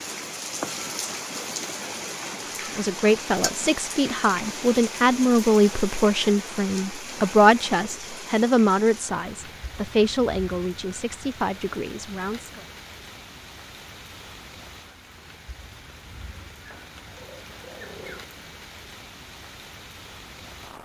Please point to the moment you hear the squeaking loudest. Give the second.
18 s.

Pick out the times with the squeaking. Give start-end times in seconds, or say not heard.
16.6-18.3.